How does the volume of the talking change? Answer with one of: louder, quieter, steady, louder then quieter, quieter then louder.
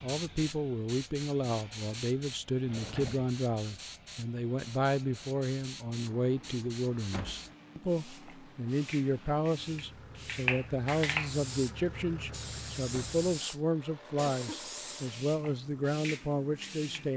steady.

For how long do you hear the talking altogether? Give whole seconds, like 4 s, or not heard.
17 s.